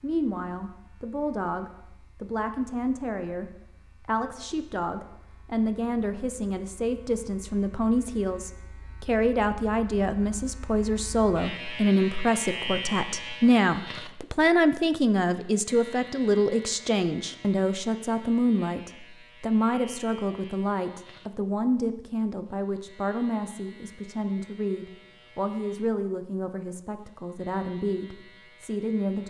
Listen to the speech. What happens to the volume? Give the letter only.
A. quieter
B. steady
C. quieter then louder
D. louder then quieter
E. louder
D.